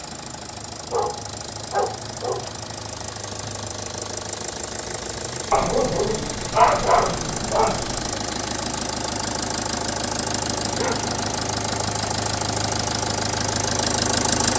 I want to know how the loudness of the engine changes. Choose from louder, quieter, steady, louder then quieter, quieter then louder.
louder.